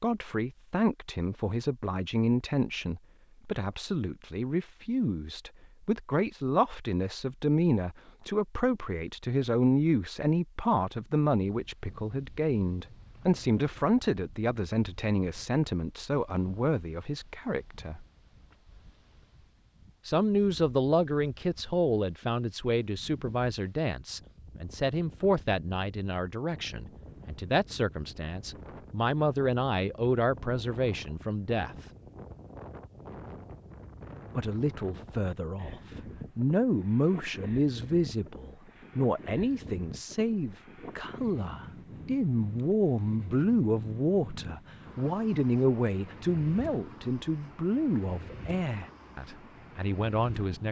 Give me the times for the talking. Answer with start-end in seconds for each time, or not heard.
0.0-18.1, 20.1-31.9, 34.4-50.6.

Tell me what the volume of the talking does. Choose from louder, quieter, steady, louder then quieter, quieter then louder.
steady.